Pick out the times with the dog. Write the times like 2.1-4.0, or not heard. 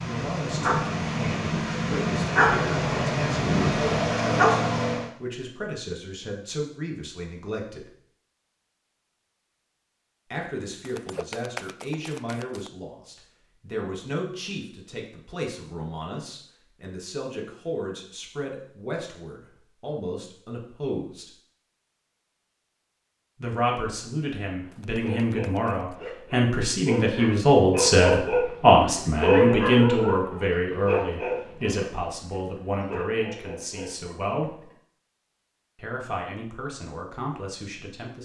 0.0-5.1, 24.9-34.8.